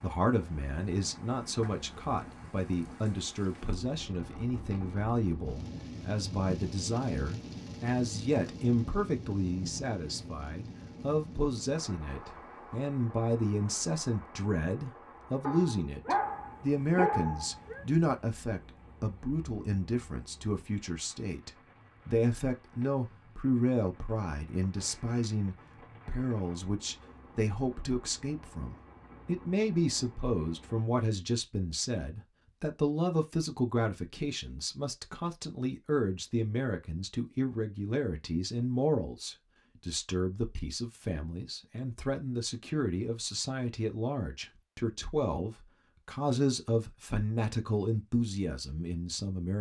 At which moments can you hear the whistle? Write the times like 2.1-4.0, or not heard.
not heard.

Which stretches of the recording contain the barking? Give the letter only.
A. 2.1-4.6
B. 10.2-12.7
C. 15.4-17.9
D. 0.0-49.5
C.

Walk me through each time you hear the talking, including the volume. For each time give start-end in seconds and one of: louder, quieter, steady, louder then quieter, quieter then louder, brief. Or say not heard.
0.0-49.5 steady.